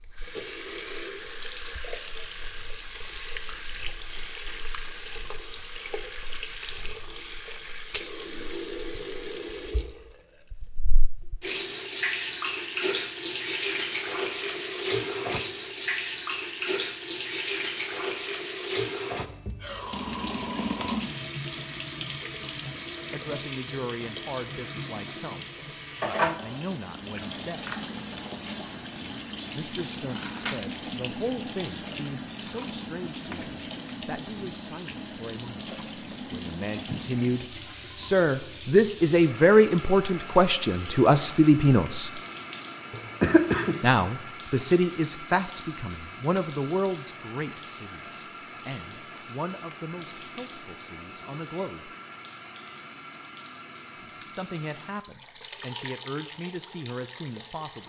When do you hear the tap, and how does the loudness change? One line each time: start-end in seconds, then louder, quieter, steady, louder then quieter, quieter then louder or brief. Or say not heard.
0.0-57.8 louder then quieter.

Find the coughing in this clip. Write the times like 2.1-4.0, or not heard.
42.9-43.8.